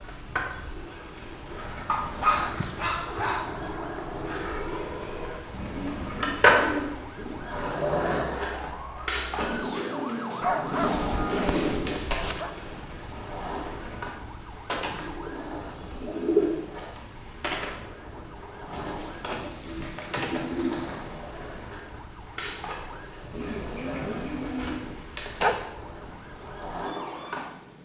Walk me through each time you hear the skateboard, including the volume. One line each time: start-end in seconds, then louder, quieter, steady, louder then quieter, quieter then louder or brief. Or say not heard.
0.0-27.8 louder then quieter.